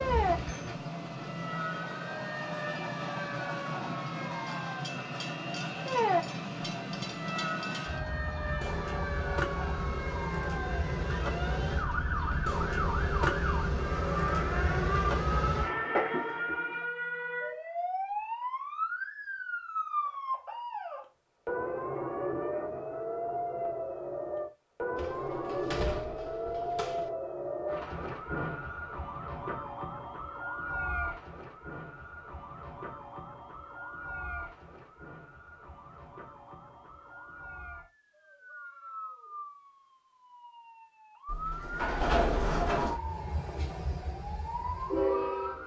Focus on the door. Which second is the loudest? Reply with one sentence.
The loudest moment of the door is at 42 seconds.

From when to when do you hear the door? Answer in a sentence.
The door can be heard from 0.0 to 0.8 s, from 24.9 to 27.1 s and from 41.2 to 43.0 s.